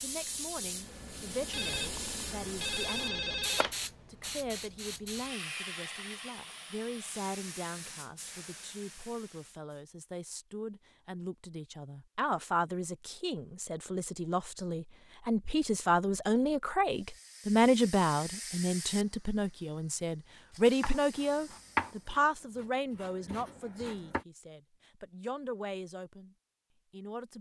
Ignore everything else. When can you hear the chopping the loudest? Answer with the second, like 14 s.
22 s.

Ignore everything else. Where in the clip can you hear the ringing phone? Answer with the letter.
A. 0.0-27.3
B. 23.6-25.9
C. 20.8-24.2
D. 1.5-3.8
D.